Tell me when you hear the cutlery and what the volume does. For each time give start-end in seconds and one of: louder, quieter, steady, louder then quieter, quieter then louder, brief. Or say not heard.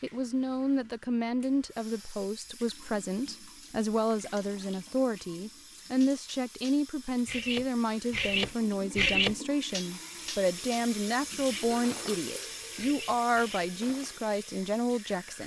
6.0-14.2 louder then quieter.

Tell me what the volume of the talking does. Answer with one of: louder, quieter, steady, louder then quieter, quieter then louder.
steady.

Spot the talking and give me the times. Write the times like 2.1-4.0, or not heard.
0.0-15.4.